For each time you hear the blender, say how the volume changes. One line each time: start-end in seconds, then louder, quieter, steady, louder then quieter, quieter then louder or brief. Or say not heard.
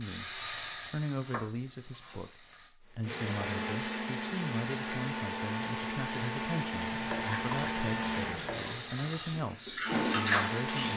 3.0-10.9 steady.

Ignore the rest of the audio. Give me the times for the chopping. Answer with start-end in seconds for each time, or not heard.
1.2-2.2, 6.9-8.8.